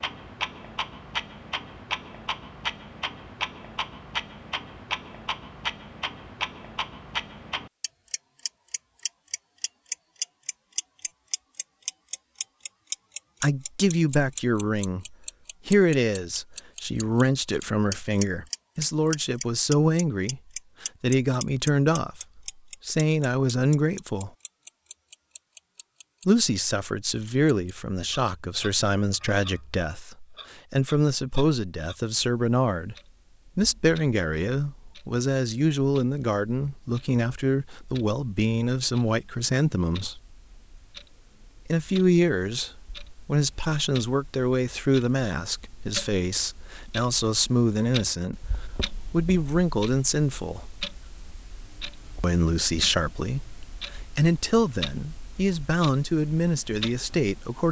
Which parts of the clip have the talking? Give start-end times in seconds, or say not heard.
13.4-24.3, 26.2-33.0, 33.5-40.2, 41.6-50.6, 52.2-57.6.